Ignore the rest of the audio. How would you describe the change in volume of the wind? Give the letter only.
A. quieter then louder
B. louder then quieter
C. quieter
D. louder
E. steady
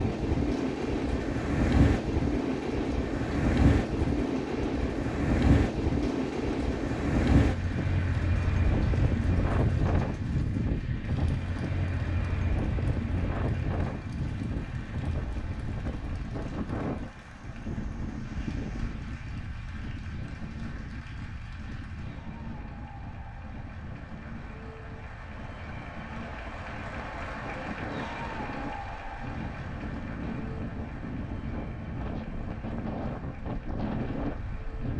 A.